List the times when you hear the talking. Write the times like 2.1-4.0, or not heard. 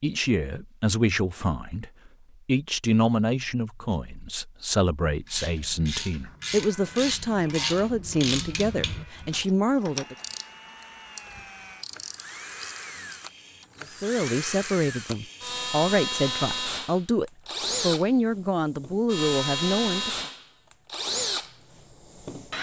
0.0-10.2, 13.8-20.1.